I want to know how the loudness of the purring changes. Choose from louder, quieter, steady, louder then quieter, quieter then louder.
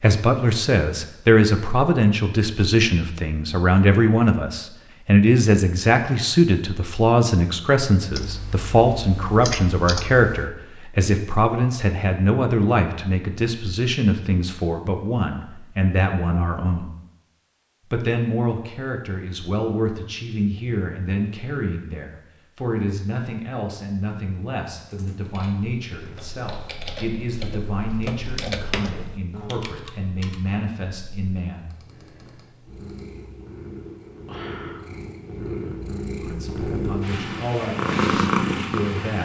louder.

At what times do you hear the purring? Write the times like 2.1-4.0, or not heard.
32.6-39.2.